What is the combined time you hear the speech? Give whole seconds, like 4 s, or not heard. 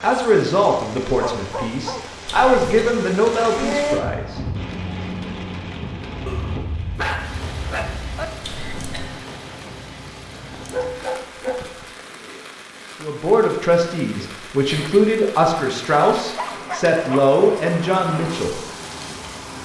10 s.